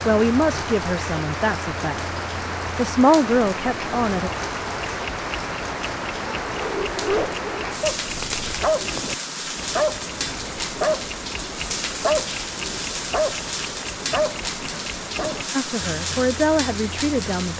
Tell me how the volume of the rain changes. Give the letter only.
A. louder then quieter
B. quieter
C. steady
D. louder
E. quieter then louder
C.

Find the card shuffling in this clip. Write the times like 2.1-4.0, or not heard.
8.1-8.7.